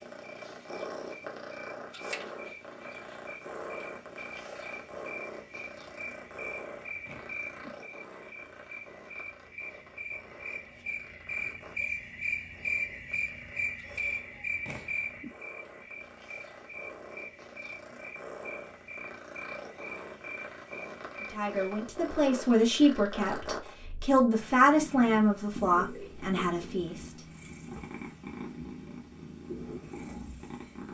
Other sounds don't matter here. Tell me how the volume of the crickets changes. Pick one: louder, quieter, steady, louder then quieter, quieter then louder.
louder then quieter.